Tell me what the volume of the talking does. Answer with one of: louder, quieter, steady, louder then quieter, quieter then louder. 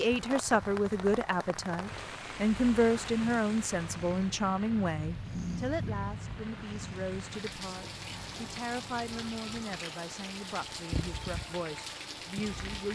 quieter.